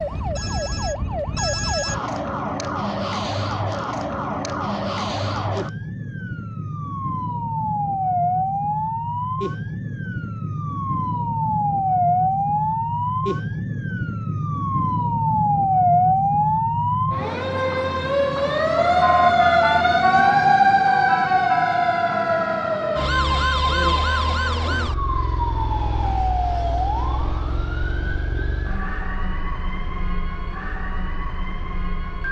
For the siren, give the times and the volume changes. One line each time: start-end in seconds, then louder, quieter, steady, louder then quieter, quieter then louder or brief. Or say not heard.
0.0-32.2 louder then quieter.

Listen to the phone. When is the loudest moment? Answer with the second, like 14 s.
2 s.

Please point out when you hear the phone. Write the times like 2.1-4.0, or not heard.
0.3-2.0.